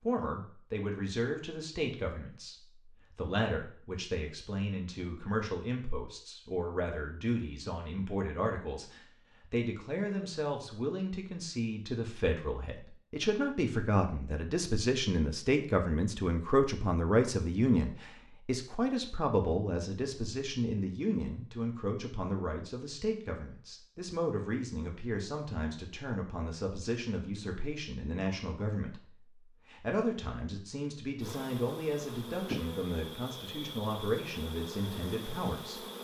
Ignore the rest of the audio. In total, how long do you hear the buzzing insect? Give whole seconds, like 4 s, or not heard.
5 s.